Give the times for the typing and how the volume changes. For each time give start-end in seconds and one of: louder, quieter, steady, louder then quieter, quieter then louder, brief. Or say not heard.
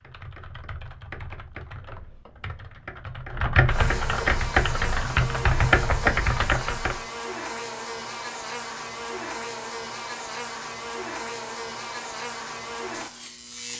0.0-7.0 louder.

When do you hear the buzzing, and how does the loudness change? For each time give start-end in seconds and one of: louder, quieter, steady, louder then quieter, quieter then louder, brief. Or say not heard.
3.5-13.7 steady.